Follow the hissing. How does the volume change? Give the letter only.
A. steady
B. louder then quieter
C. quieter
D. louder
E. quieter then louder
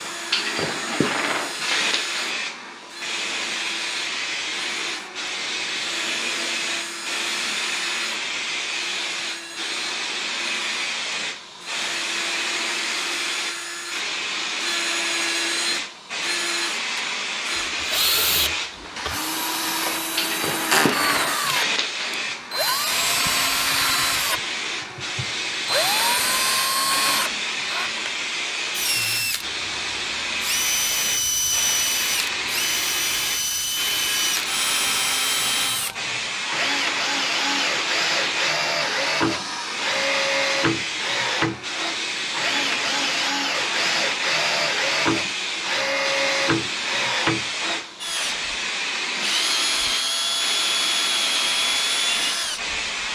A.